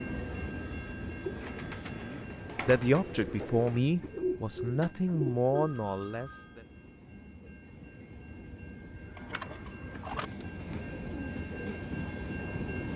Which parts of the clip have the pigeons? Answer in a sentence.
You can hear the pigeons from 0.0 to 5.5 s and from 9.1 to 12.9 s.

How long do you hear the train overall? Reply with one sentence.
You can hear the train for 13 seconds altogether.